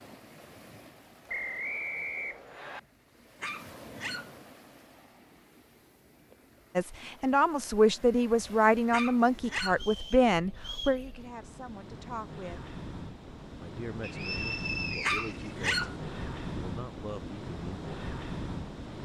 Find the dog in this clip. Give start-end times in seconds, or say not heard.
3.4-4.3, 8.9-9.8, 15.0-15.9.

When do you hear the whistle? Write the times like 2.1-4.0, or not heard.
1.2-2.8, 9.7-11.0, 14.0-15.6.